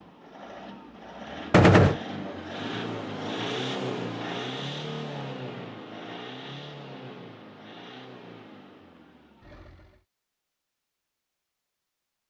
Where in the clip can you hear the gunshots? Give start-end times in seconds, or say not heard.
1.5-2.0.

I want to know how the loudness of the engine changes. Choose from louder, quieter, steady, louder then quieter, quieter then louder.
louder then quieter.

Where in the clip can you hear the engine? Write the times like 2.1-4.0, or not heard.
0.0-10.1.